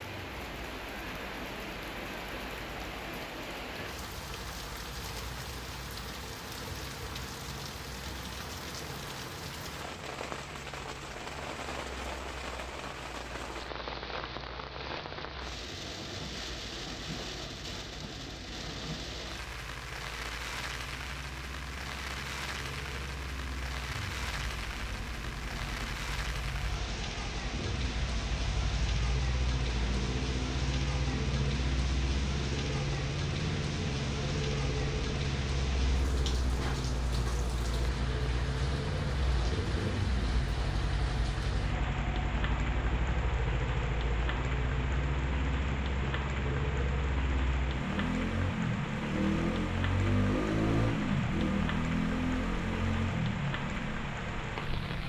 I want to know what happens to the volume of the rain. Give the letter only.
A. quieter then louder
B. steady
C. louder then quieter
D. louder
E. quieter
B.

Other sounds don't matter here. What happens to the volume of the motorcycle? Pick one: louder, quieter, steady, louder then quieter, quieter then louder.
louder.